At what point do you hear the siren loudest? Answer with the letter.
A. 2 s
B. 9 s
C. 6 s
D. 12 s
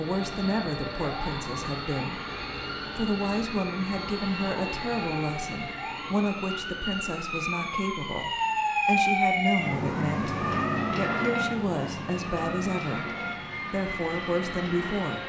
B.